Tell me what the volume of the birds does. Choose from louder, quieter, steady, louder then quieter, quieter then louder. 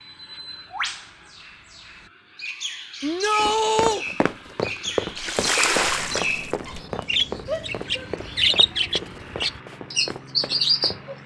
louder.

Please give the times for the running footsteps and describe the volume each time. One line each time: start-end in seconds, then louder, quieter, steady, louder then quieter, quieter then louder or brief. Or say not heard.
3.4-11.1 quieter.